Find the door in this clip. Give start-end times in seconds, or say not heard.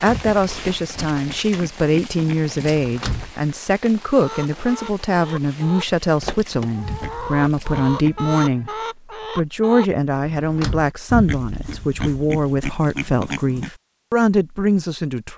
2.8-3.4, 6.2-7.1, 10.2-10.9.